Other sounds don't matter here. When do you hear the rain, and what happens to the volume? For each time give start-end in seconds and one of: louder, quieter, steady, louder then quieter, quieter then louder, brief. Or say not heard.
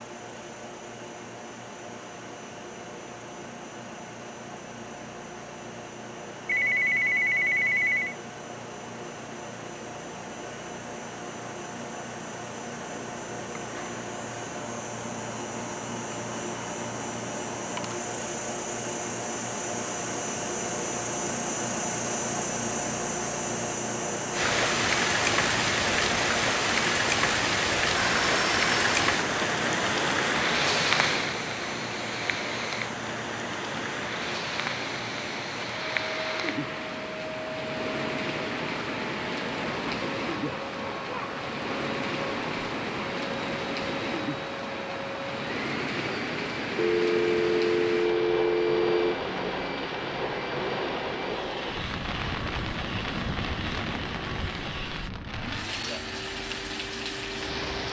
24.3-57.8 quieter.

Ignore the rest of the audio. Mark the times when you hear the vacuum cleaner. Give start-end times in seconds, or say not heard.
0.0-57.8.